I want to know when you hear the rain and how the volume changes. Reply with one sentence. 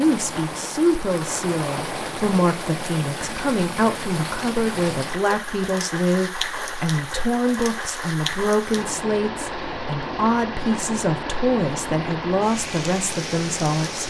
You can hear the rain from 0.0 to 14.0 s, at a steady volume.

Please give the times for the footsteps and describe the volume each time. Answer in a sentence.
You can't hear the footsteps here.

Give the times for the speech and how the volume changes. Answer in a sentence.
You can hear the speech from 0.0 to 14.0 s, at a steady volume.